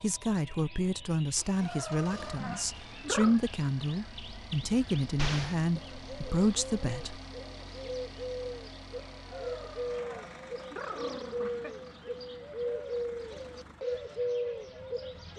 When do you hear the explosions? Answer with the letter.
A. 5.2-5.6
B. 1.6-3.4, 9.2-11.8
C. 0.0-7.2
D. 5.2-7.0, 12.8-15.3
A.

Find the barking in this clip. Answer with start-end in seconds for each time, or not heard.
1.6-3.4, 9.2-11.8.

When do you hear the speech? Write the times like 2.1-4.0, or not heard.
0.0-7.2.